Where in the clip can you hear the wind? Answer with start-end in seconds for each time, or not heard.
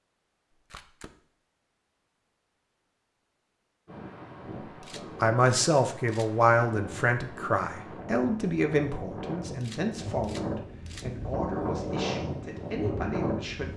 3.9-13.7.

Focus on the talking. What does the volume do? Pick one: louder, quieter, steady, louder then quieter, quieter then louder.
quieter.